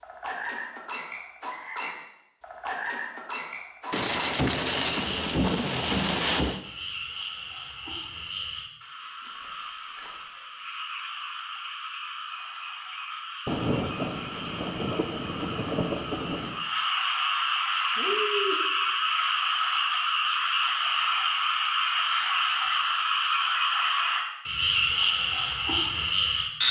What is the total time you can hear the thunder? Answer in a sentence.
You can hear the thunder for 6 seconds altogether.